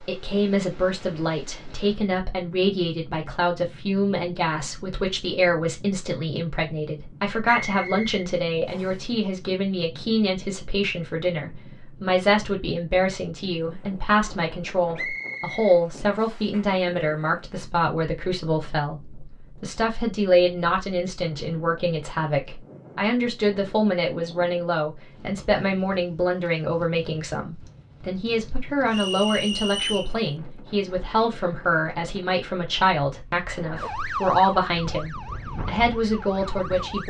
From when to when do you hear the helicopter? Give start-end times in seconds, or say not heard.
not heard.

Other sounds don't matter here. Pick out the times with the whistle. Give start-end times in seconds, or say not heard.
7.5-9.0, 14.9-16.4, 28.9-30.1.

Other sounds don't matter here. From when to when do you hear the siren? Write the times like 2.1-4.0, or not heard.
33.5-37.0.